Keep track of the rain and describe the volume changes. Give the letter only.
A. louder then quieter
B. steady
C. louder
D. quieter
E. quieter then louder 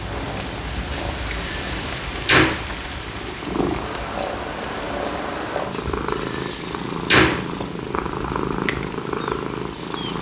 D.